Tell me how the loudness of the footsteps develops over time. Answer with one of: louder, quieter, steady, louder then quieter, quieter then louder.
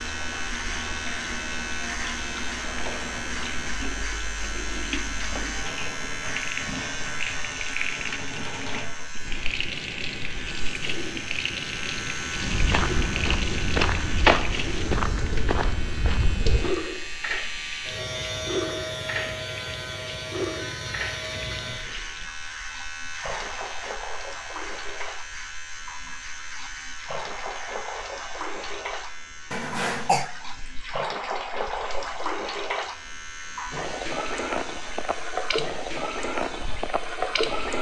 louder then quieter.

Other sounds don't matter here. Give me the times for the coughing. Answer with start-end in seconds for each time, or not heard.
29.5-30.3.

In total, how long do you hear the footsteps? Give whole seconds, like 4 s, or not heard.
4 s.